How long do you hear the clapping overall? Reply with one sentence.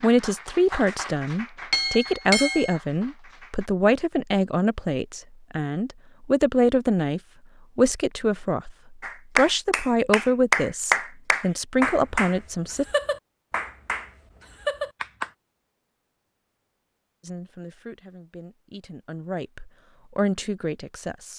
The clapping can be heard for 10 seconds in total.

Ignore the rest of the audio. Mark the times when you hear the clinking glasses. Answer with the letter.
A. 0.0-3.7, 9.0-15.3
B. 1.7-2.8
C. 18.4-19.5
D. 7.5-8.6
B.